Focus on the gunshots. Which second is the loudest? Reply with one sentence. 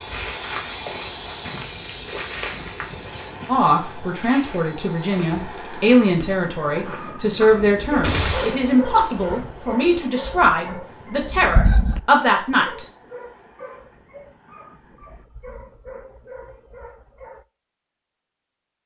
The loudest moment of the gunshots is at 8 seconds.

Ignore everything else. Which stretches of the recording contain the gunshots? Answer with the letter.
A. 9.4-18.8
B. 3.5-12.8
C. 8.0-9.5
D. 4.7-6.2
C.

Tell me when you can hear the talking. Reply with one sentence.
The talking can be heard from 3.5 to 12.8 s.